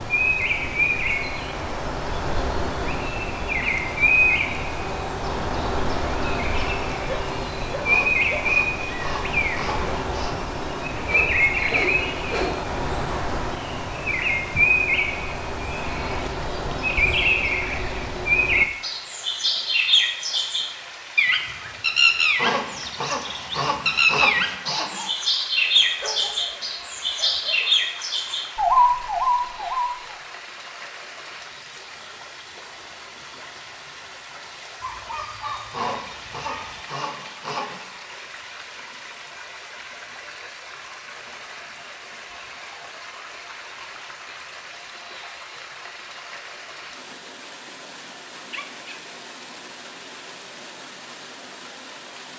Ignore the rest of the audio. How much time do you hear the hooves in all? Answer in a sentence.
The hooves can't be heard in this clip.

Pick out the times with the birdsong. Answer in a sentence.
The birdsong can be heard from 0.0 to 30.1 s.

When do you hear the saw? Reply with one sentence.
You can hear the saw from 7.8 to 10.3 s, from 22.4 to 25.1 s and from 35.7 to 37.9 s.